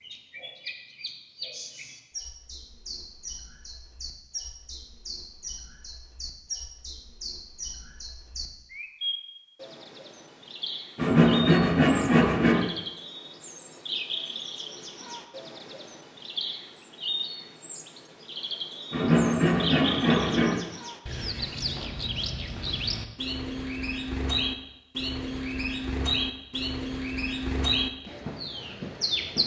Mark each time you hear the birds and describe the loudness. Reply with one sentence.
The birds can be heard from 0.0 to 29.4 s, getting louder.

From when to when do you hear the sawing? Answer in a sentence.
The sawing can be heard from 10.9 to 12.7 s and from 18.9 to 20.6 s.